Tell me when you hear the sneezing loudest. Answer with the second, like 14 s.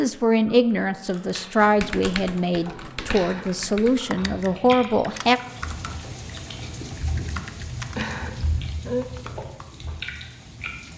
9 s.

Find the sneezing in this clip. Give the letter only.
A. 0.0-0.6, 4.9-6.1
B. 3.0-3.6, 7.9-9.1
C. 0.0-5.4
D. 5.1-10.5
B.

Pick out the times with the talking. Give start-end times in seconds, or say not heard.
0.0-5.4.